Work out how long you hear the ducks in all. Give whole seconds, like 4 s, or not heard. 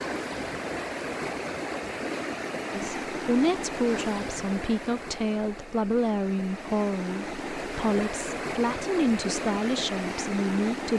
not heard.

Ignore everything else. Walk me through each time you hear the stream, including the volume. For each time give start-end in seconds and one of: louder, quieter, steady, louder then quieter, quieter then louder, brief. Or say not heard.
0.0-10.9 quieter then louder.